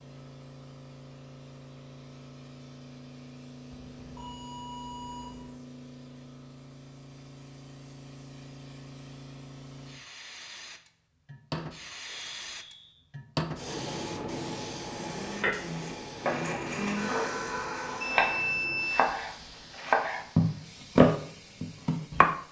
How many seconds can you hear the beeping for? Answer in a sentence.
You can hear the beeping for 5 seconds altogether.